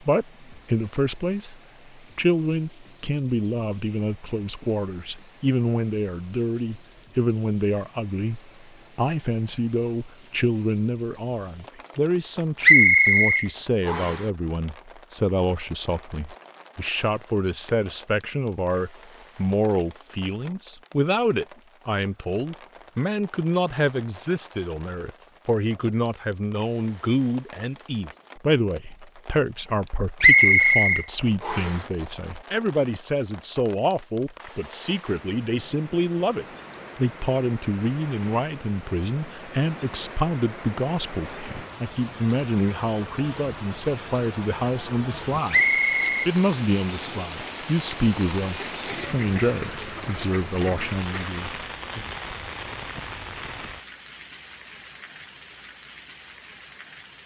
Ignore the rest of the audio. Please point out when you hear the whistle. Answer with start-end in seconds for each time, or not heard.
12.6-14.2, 30.2-31.8, 45.5-46.0.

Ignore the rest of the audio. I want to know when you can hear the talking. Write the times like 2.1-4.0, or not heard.
0.0-45.6, 46.2-52.0.